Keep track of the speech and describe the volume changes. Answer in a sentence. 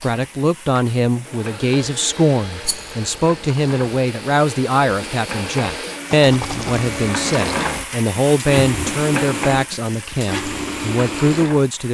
The loudness of the speech stays about the same.